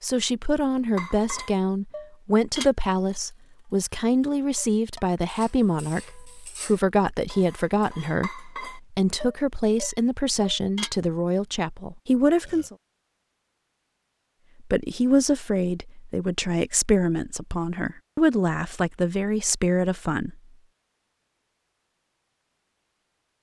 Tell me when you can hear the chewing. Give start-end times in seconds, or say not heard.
not heard.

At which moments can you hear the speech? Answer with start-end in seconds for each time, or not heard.
0.0-12.8, 14.7-20.4.